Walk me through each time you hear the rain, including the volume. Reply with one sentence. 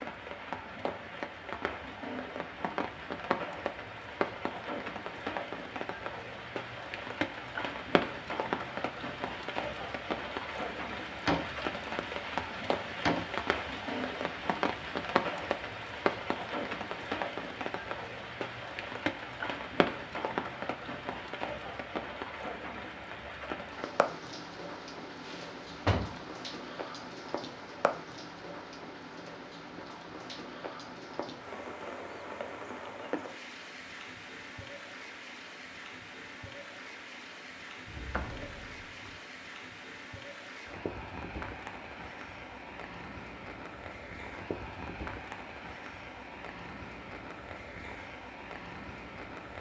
The rain can be heard from 0.0 to 49.5 s, getting quieter.